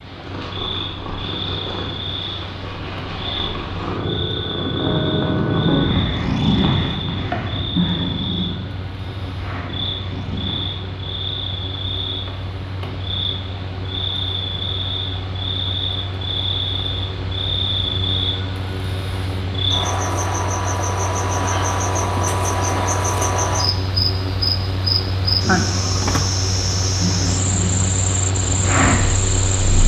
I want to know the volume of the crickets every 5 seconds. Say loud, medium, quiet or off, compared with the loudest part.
medium, medium, medium, loud, loud, loud.